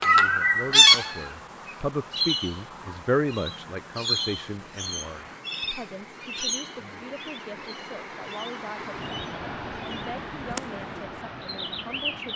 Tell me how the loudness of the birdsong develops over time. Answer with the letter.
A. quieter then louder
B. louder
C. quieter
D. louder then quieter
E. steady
A.